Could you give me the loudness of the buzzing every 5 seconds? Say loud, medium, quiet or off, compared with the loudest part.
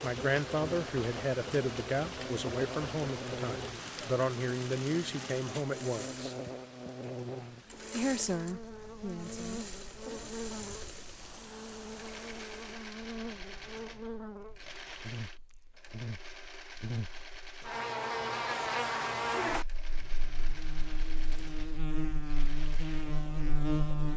medium, medium, medium, loud, loud.